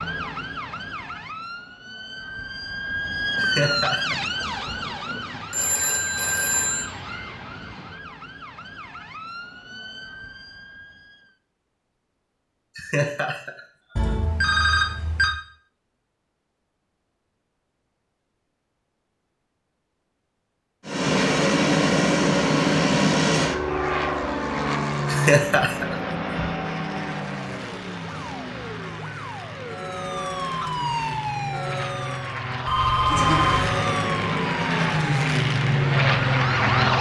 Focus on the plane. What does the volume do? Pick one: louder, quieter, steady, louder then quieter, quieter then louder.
quieter then louder.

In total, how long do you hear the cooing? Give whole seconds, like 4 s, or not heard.
not heard.